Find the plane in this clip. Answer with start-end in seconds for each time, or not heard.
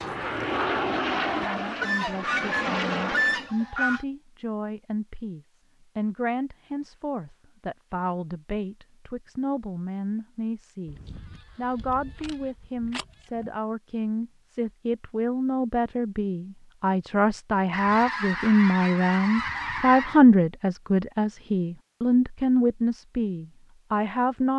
0.0-3.5.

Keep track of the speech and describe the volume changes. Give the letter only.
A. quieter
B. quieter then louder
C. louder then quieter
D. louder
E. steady
D.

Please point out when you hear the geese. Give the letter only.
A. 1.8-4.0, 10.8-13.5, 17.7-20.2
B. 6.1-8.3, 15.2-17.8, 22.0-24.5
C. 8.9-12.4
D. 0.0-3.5
A.